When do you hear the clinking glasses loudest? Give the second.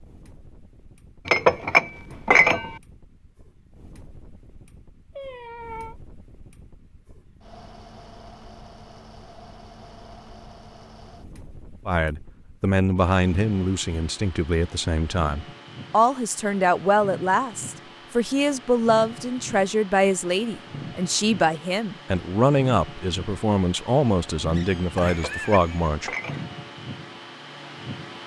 2 s.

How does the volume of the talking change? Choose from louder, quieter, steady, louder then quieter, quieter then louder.
steady.